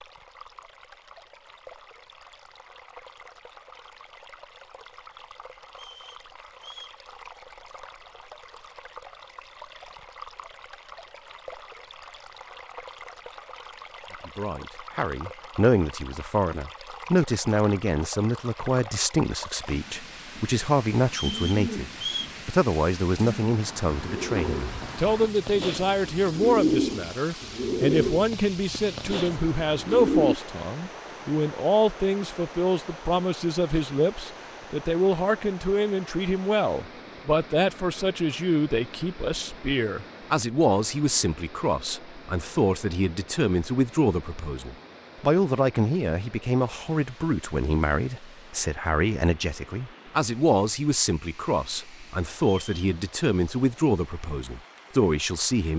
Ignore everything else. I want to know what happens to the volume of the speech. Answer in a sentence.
The volume of the speech stays about the same.